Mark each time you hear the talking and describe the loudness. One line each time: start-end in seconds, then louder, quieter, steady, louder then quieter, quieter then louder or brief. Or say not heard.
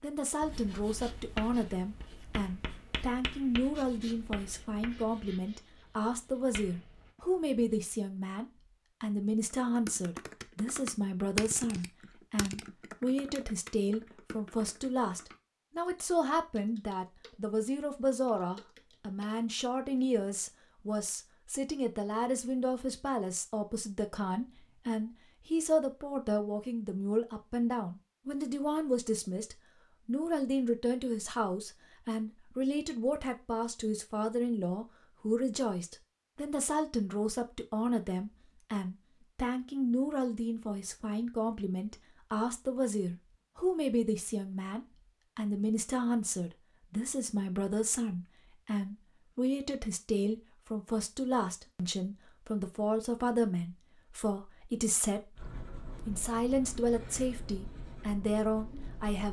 0.0-59.2 steady.